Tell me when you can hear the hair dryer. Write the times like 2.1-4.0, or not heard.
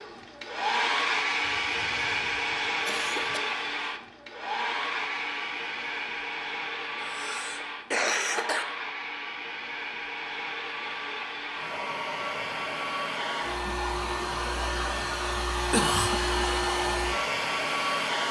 0.0-18.2.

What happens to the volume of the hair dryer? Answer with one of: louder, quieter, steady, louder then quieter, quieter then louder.
quieter then louder.